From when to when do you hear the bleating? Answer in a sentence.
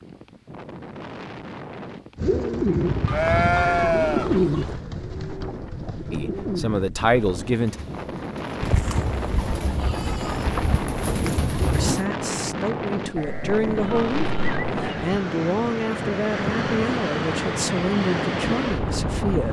You can hear the bleating from 3.0 to 4.8 s, from 8.6 to 11.4 s and from 13.2 to 14.8 s.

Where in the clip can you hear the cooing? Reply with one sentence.
The cooing can be heard from 2.1 to 12.1 s.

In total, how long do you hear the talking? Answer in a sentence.
The talking can be heard for 9 seconds in total.